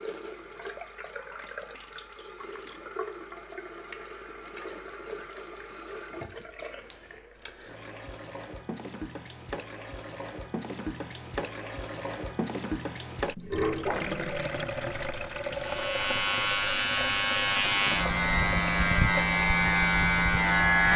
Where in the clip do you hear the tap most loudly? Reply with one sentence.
The volume of the tap peaks at 14 seconds.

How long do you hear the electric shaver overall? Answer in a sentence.
You can hear the electric shaver for 5 seconds altogether.